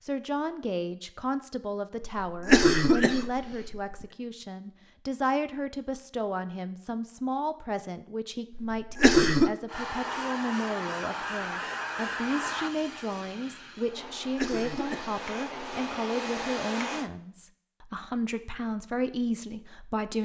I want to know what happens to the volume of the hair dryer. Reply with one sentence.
The volume of the hair dryer goes down, then up.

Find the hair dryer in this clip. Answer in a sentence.
The hair dryer can be heard from 9.7 to 17.1 s.